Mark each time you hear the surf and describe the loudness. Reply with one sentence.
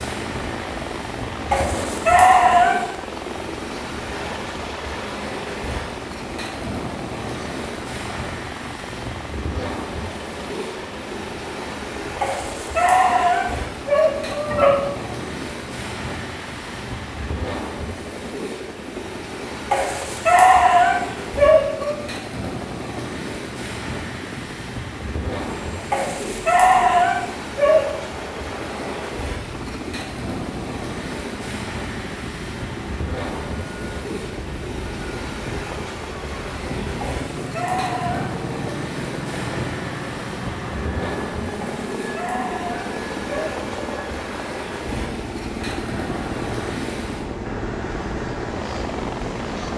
The surf can be heard from 0.0 to 49.7 s, at a steady volume.